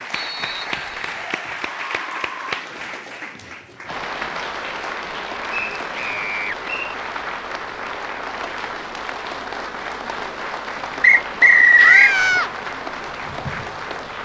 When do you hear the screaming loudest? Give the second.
12 s.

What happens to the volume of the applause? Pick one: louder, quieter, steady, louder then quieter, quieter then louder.
steady.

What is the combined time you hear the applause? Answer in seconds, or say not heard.
14 s.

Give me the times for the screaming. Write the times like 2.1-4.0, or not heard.
0.7-2.6, 5.9-6.5, 11.8-12.5.